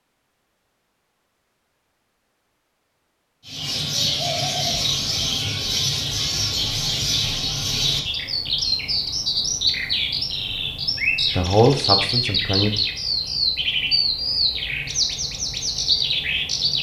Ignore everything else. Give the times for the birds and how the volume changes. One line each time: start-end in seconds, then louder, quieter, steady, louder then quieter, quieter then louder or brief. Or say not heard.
3.5-16.7 steady.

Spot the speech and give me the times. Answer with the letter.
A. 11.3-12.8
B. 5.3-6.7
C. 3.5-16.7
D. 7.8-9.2
A.